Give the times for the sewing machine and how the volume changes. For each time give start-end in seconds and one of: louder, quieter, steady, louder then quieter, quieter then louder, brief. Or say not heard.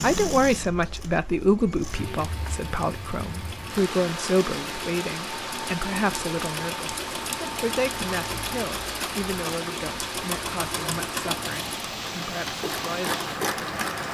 0.0-14.0 louder.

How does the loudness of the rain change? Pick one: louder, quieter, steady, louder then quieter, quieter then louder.
louder.